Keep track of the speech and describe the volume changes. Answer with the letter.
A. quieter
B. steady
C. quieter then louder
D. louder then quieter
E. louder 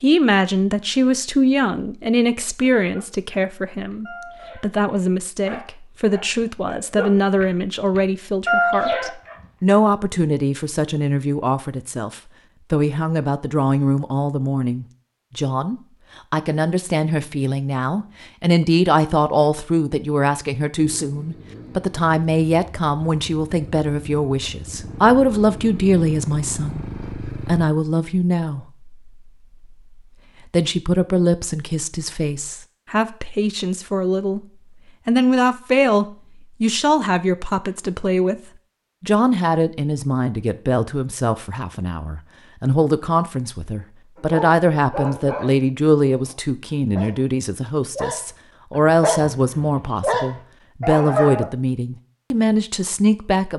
B.